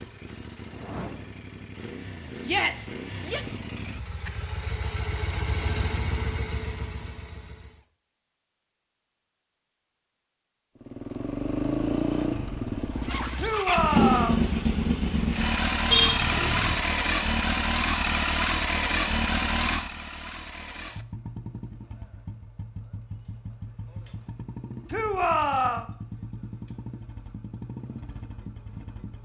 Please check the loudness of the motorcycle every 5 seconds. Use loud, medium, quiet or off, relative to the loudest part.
quiet, medium, loud, loud, quiet, quiet.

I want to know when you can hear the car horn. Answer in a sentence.
The car horn can be heard from 15.9 to 16.8 s.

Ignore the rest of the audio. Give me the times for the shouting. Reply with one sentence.
You can hear the shouting from 2.4 to 3.5 s, from 13.3 to 14.4 s and from 24.9 to 25.9 s.